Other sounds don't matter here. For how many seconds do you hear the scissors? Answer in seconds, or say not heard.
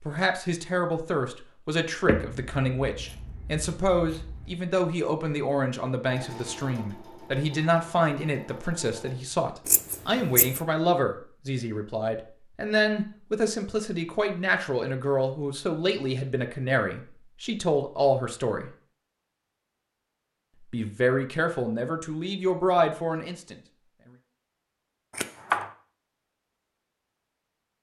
4 s.